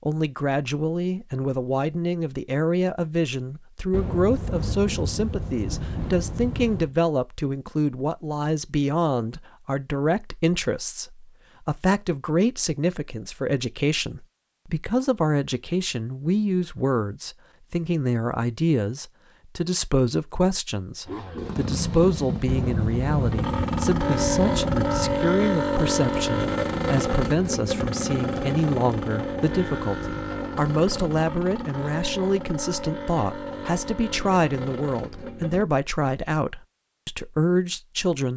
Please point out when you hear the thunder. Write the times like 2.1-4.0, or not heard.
3.9-7.0, 22.4-25.3.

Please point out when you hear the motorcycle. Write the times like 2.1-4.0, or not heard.
21.1-35.6.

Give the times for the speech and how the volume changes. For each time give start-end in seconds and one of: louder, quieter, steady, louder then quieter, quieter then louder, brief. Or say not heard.
0.0-38.3 steady.